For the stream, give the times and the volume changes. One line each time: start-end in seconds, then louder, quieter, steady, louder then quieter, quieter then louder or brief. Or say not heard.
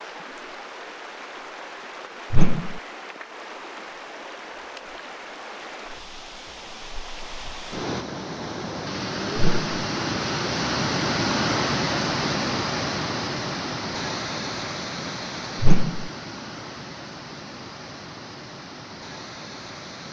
0.0-20.0 louder then quieter.